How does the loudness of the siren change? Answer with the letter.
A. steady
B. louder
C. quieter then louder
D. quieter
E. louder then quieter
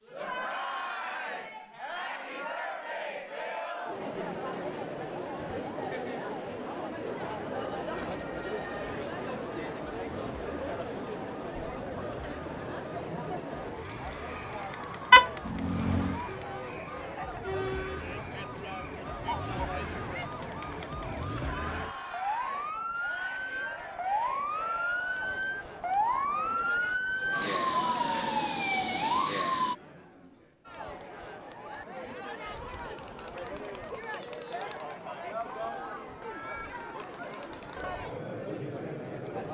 B.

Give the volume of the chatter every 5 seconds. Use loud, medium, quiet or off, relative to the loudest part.
loud, loud, loud, loud, medium, medium, medium, loud.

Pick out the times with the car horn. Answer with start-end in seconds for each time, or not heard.
15.1-16.2.